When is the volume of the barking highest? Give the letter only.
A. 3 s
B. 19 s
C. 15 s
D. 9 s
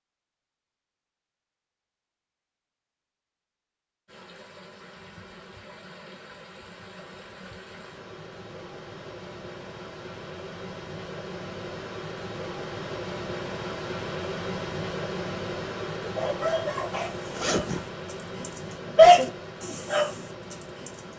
B.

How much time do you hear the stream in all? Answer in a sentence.
You can hear the stream for 17 seconds altogether.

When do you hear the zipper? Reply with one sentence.
You can hear the zipper from 17.2 to 17.9 s.